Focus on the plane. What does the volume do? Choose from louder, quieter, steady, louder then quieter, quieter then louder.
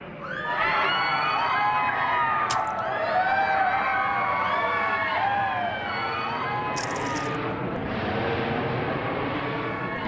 louder.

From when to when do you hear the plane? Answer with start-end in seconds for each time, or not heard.
0.0-10.0.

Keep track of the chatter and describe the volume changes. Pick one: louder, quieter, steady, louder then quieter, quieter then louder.
quieter.